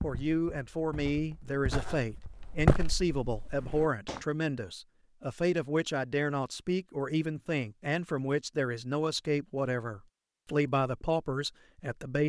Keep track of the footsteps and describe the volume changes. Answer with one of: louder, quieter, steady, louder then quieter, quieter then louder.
louder then quieter.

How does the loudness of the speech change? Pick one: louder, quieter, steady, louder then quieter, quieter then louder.
steady.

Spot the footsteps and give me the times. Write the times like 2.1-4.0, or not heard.
0.0-4.2.